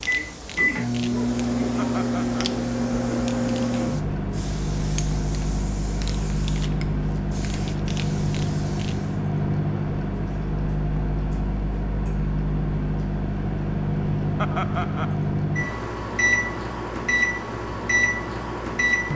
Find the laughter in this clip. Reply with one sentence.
You can hear the laughter from 1.8 to 2.4 s and from 14.3 to 15.2 s.